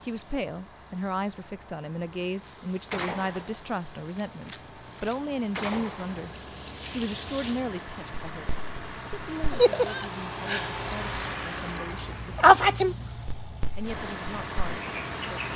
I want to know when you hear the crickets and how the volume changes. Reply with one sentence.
You can hear the crickets from 5.7 to 15.5 s, getting louder then quieter.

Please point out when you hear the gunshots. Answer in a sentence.
You can hear the gunshots from 2.9 to 6.2 s.